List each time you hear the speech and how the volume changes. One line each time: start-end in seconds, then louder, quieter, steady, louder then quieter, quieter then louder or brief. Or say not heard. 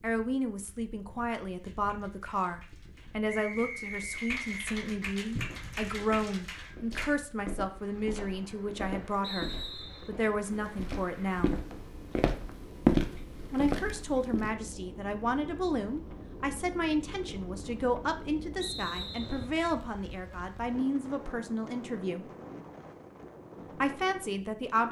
0.0-11.6 steady
13.5-22.2 steady
23.8-24.8 brief.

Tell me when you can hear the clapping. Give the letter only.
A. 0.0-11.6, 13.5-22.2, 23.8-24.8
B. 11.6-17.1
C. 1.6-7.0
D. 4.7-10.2
C.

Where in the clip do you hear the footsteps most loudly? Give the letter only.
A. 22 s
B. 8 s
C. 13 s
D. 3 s
C.